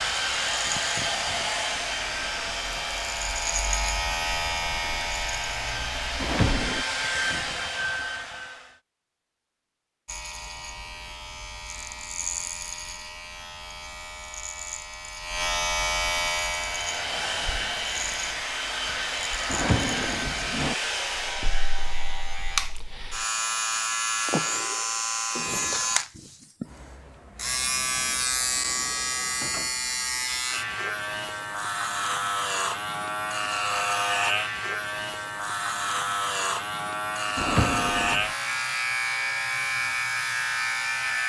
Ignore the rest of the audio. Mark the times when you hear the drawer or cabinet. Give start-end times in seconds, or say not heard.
6.2-6.8, 19.5-20.8, 37.4-38.2.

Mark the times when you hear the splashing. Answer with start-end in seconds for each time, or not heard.
not heard.